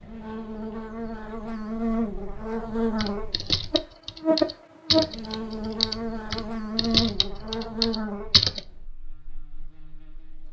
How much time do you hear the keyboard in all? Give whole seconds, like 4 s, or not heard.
6 s.